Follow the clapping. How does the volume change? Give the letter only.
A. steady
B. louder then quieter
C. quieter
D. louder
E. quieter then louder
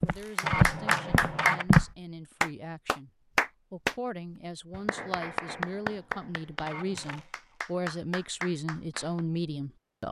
C.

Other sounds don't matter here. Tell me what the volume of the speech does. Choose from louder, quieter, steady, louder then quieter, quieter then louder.
louder.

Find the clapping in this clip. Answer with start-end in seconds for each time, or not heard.
0.3-4.0, 4.7-9.2.